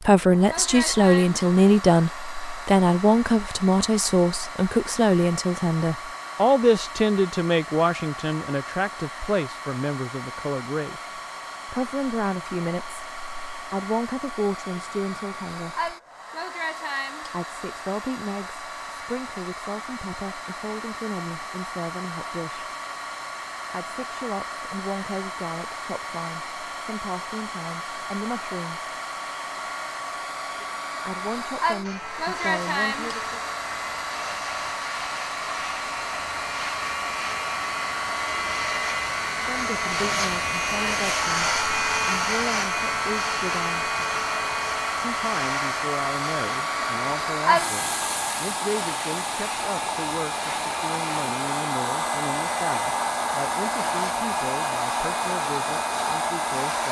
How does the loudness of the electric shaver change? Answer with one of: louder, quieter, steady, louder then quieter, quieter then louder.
louder then quieter.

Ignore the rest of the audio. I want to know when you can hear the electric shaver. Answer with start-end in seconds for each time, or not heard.
31.8-56.8.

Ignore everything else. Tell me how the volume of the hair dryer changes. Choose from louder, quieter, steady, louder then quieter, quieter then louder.
louder.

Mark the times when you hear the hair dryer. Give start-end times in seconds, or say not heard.
0.0-56.8.